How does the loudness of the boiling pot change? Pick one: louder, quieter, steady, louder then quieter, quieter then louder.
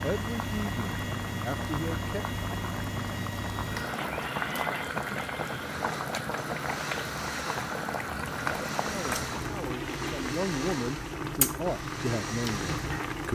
steady.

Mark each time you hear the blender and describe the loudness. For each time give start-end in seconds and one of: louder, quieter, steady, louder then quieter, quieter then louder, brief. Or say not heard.
0.0-13.2 steady.